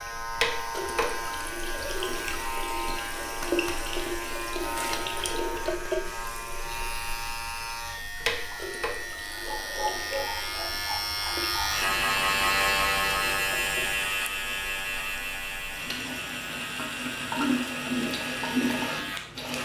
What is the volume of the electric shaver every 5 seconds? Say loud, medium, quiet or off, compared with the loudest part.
medium, medium, loud, medium.